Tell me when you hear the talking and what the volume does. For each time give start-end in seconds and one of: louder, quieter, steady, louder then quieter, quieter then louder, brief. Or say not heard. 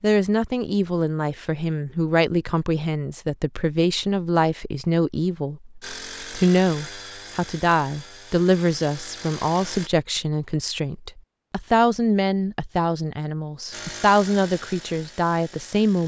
0.0-16.0 steady.